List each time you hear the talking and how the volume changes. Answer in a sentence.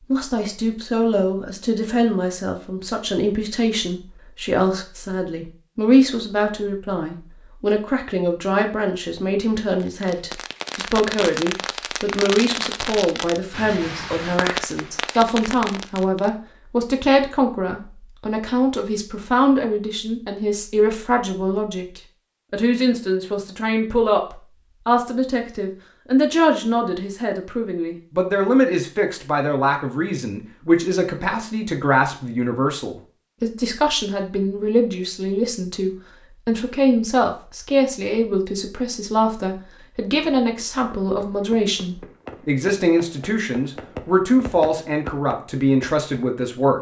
You can hear the talking from 0.1 to 46.7 s, at a steady volume.